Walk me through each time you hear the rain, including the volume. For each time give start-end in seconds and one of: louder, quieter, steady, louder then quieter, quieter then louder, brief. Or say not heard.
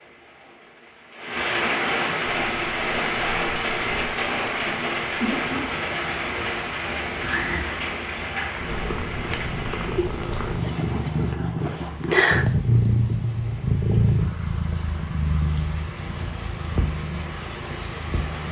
0.0-18.4 quieter then louder.